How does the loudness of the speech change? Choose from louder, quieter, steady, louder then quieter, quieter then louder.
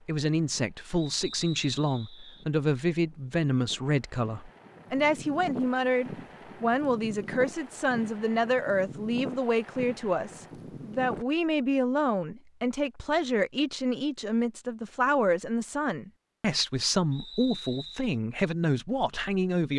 steady.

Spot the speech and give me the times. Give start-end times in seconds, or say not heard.
0.1-19.7.